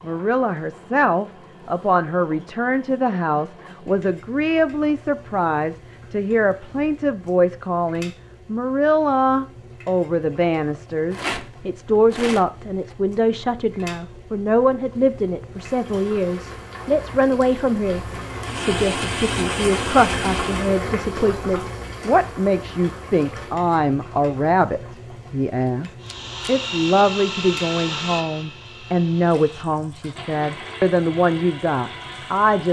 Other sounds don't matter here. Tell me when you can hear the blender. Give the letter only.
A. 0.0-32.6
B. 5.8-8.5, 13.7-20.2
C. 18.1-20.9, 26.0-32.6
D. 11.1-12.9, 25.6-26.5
C.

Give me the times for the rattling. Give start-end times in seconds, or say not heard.
11.1-12.9, 25.6-26.5.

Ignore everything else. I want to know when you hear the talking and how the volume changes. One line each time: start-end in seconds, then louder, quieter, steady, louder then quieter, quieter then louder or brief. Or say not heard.
0.0-32.6 steady.